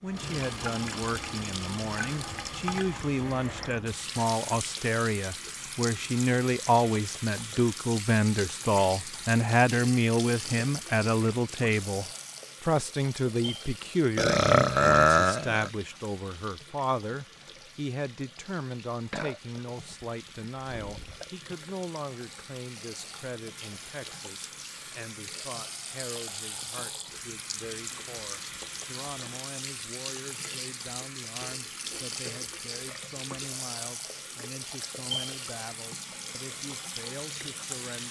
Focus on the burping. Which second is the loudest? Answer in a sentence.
The volume of the burping peaks at 15 seconds.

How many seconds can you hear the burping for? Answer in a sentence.
The burping can be heard for 4 seconds in total.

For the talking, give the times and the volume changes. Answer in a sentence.
The talking can be heard from 0.0 to 38.0 s, getting quieter.